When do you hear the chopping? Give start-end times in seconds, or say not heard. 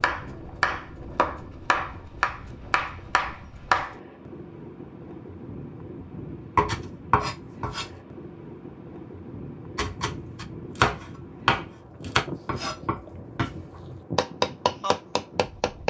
0.0-4.0, 6.5-8.0, 9.8-15.8.